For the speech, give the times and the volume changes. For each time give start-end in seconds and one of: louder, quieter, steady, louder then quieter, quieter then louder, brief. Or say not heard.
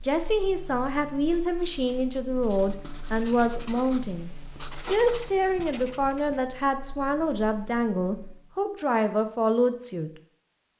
0.0-10.1 steady.